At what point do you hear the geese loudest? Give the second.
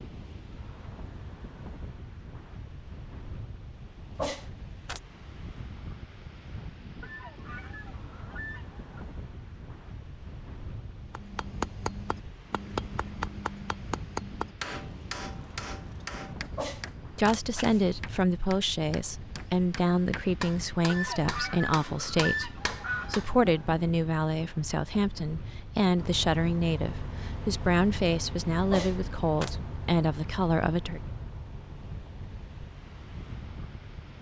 22 s.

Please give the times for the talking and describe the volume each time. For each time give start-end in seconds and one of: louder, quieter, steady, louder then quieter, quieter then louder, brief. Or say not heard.
17.1-31.0 steady.